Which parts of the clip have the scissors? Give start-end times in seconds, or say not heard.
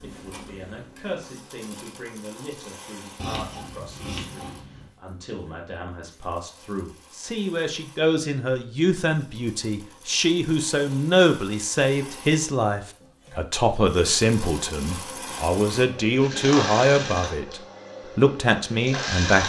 3.1-5.0.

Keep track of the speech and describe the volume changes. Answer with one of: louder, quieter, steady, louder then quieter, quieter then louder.
louder.